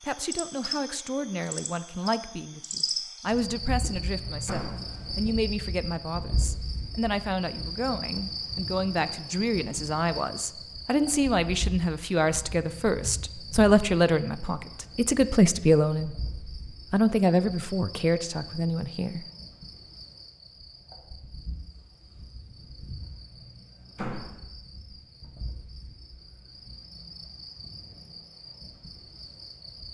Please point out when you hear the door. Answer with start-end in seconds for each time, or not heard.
4.5-4.9, 23.9-24.4.